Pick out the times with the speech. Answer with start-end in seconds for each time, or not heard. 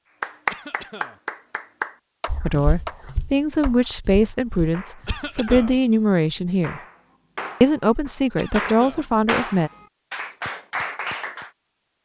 2.4-6.8, 7.6-9.7.